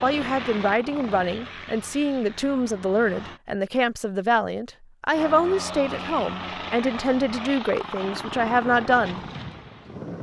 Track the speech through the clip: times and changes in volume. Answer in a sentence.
The speech can be heard from 0.0 to 9.2 s, at a steady volume.